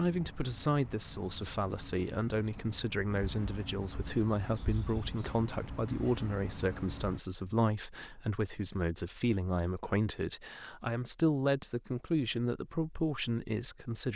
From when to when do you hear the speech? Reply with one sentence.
The speech can be heard from 0.0 to 14.1 s.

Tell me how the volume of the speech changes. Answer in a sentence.
The volume of the speech stays about the same.